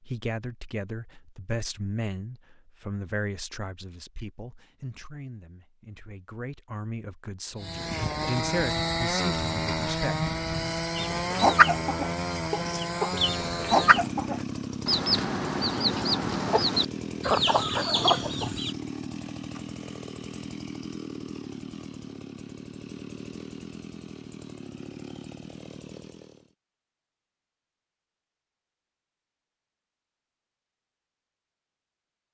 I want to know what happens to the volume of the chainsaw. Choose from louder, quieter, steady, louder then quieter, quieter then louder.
quieter.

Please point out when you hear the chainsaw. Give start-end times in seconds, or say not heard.
7.5-26.6.